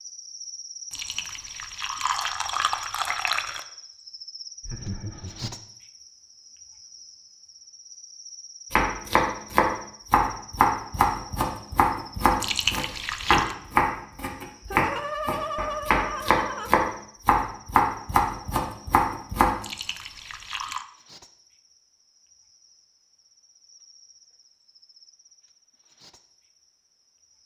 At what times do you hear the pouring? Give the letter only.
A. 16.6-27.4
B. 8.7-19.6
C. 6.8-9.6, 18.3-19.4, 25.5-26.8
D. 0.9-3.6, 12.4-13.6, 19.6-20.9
D.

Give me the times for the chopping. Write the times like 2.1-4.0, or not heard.
8.7-19.6.